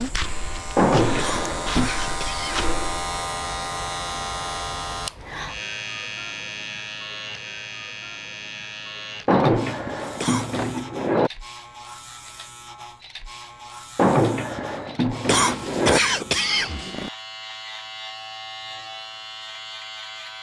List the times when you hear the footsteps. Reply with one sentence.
You can hear the footsteps from 0.0 to 3.1 s.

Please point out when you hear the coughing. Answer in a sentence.
The coughing can be heard from 1.1 to 2.7 s, from 10.2 to 10.6 s and from 15.2 to 17.1 s.